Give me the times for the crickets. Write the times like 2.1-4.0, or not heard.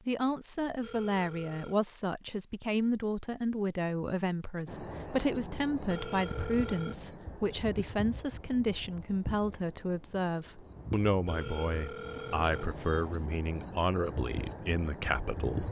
4.7-15.6.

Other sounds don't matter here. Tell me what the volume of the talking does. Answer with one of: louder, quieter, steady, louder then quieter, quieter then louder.
steady.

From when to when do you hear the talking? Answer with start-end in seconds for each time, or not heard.
0.1-15.6.